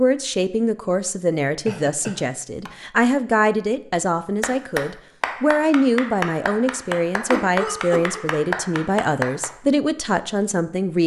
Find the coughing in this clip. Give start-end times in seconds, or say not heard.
1.6-2.7, 7.3-8.2.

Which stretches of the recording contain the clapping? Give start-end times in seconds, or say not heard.
4.4-9.5.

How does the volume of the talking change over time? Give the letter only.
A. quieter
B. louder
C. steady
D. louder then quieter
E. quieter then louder
C.